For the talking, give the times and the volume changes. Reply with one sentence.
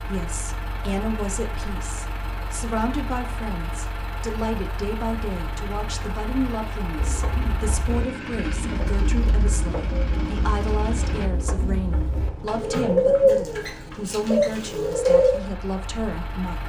You can hear the talking from 0.1 to 16.6 s, at a steady volume.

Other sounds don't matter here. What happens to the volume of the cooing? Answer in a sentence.
The volume of the cooing goes up, then down.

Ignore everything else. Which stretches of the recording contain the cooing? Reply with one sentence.
The cooing can be heard from 7.0 to 15.4 s.